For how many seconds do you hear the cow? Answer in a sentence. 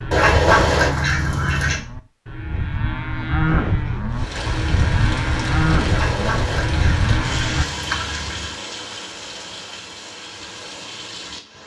You can hear the cow for 8 seconds altogether.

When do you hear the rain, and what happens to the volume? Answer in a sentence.
You can hear the rain from 4.1 to 11.6 s, getting quieter.